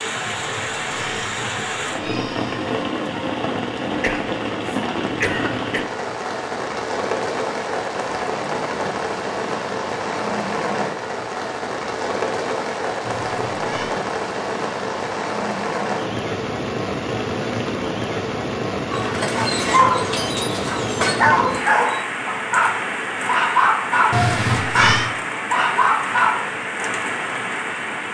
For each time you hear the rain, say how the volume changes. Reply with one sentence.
The rain can be heard from 0.0 to 28.0 s, at a steady volume.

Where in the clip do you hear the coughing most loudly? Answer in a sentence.
The volume of the coughing peaks at 5 seconds.